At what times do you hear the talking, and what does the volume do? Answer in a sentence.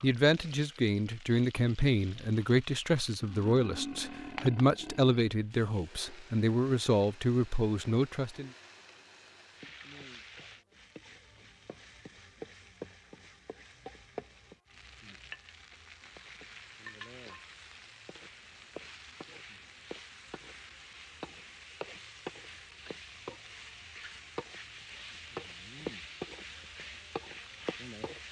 You can hear the talking from 0.0 to 8.5 s, at a steady volume.